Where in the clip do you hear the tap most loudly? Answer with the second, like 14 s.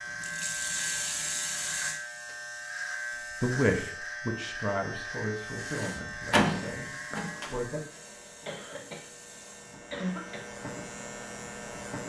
1 s.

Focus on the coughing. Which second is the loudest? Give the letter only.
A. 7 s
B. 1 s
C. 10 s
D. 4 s
C.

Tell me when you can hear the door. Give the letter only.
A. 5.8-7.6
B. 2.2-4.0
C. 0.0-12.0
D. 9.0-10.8
A.